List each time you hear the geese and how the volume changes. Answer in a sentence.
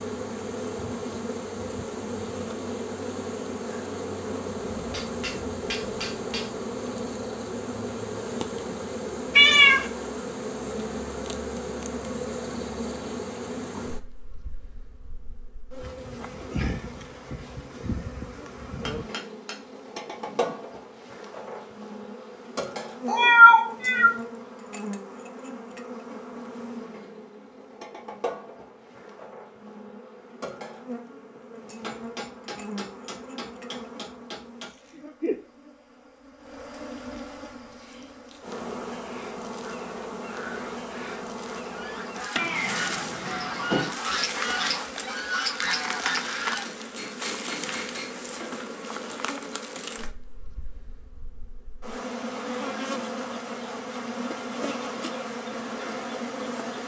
You can hear the geese from 39.6 to 46.7 s, getting louder.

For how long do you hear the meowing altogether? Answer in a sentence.
The meowing can be heard for 3 seconds in total.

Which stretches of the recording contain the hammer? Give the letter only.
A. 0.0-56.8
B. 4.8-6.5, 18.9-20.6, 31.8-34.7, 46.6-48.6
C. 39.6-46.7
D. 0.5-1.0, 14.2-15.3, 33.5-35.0
B.